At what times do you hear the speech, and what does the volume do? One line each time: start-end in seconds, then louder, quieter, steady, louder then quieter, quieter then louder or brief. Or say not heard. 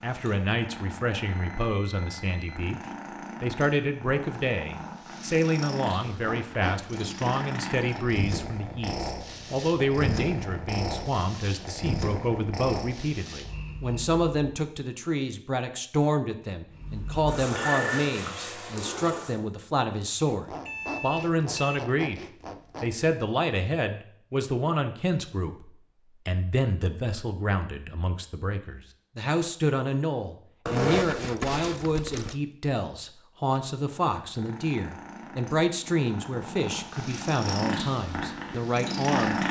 0.0-2.8 brief
3.4-39.4 steady.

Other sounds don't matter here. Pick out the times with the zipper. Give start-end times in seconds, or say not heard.
6.1-7.2, 20.2-22.9, 30.6-32.4.